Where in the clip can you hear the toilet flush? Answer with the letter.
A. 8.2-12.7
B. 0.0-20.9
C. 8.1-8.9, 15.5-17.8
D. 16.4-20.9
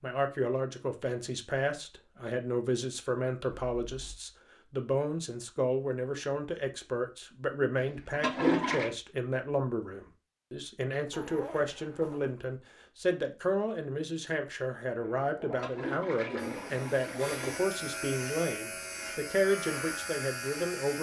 C.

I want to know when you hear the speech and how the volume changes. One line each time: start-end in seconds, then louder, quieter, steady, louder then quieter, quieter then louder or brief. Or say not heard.
0.0-20.9 steady.